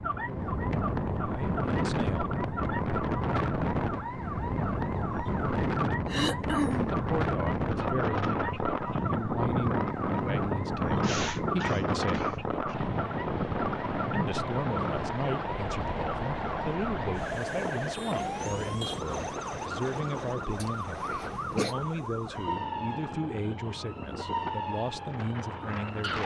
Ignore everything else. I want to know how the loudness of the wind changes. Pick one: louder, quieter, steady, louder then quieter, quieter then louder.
quieter.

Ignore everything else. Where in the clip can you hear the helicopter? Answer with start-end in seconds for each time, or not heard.
12.7-21.9.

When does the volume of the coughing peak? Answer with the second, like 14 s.
7 s.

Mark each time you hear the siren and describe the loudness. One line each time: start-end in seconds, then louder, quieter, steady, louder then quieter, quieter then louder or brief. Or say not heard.
0.0-26.2 steady.